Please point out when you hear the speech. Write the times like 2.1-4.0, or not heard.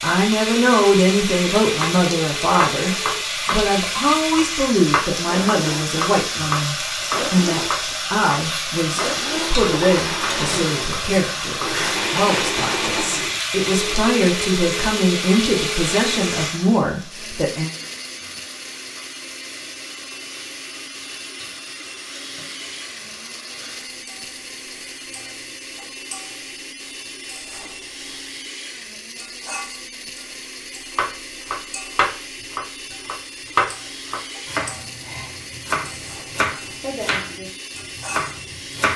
0.0-17.7.